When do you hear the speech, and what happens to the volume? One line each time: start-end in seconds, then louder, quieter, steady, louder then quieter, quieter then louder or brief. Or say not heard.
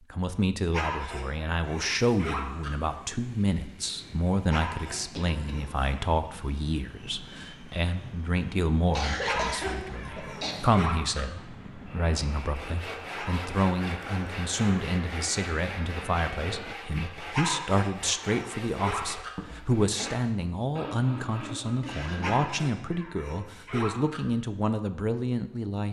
0.0-25.8 steady.